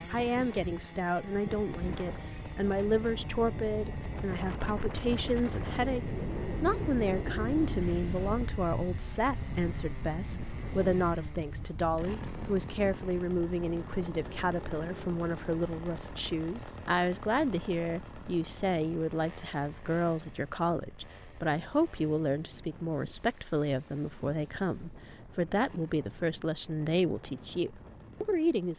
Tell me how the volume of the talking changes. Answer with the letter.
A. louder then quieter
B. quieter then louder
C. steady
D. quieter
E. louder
C.